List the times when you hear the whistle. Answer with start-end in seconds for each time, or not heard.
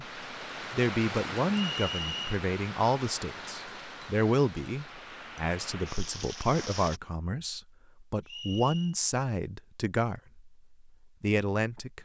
1.7-2.4, 8.2-8.9.